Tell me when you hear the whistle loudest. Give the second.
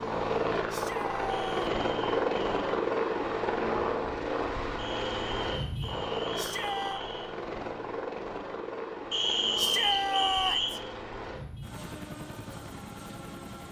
10 s.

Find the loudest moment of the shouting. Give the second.
10 s.